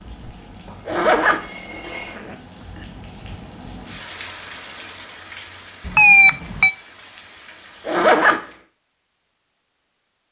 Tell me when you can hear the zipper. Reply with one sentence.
The zipper can be heard from 0.8 to 2.8 s and from 7.8 to 8.6 s.